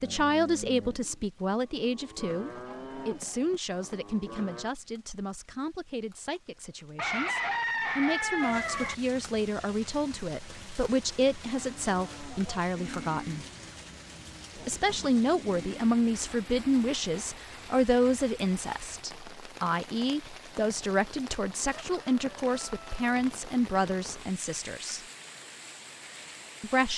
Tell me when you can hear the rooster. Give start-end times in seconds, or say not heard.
7.0-8.9, 21.8-23.0.